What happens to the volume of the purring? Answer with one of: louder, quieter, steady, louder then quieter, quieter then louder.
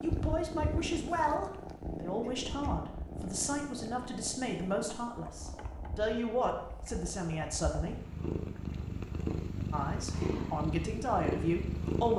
quieter then louder.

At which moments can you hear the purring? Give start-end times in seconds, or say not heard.
0.0-12.1.